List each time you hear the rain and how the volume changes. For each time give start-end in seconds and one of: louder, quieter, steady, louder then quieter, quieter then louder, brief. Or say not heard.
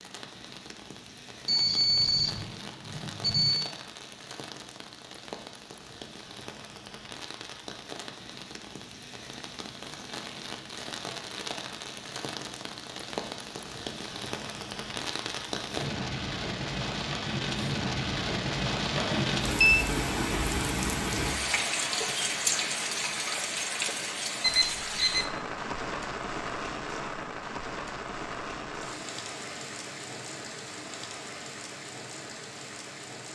0.0-33.3 louder then quieter.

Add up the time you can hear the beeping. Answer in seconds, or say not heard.
4 s.